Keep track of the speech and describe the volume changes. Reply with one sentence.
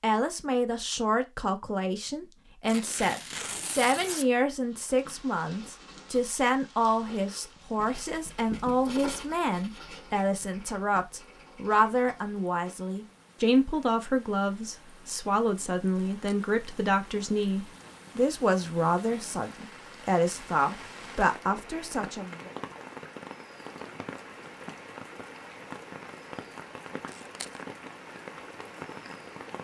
The loudness of the speech stays about the same.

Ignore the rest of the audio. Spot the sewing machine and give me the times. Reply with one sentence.
You can't hear the sewing machine here.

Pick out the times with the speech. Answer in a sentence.
You can hear the speech from 0.0 to 22.5 s.